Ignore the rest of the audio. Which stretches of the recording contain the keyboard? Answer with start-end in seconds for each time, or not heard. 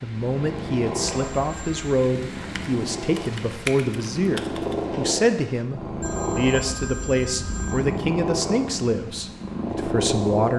2.5-4.8.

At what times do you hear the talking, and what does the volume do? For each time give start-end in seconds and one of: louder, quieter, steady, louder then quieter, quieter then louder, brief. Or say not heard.
0.0-10.5 steady.